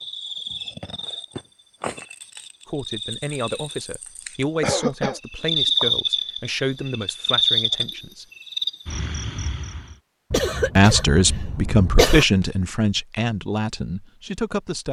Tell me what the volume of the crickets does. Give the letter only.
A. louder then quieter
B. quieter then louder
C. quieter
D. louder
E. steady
A.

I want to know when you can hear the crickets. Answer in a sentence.
You can hear the crickets from 0.0 to 9.9 s.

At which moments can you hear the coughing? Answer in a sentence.
You can hear the coughing from 4.6 to 5.2 s and from 10.3 to 12.2 s.